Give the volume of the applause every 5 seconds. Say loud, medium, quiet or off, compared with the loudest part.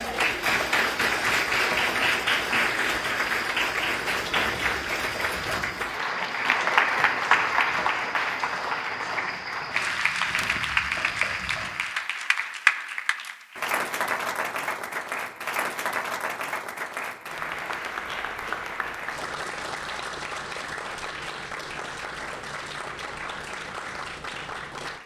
loud, loud, loud, medium, medium.